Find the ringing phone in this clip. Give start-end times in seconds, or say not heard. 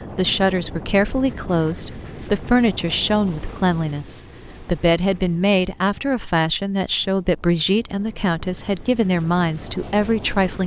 not heard.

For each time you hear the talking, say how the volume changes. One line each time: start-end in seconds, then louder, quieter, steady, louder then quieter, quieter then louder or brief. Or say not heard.
0.1-10.6 steady.